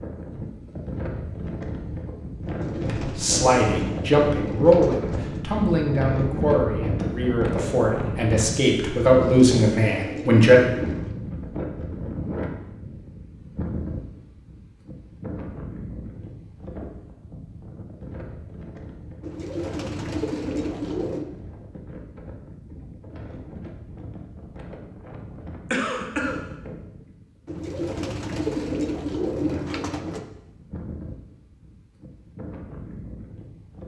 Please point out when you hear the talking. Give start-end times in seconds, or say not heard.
2.9-10.6.